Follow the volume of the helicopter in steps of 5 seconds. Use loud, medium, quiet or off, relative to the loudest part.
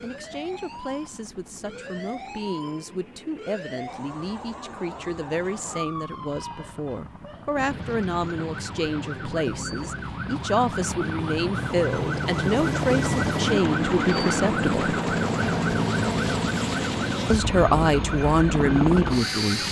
quiet, quiet, loud, loud.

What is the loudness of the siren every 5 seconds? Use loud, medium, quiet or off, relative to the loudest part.
medium, medium, loud, loud.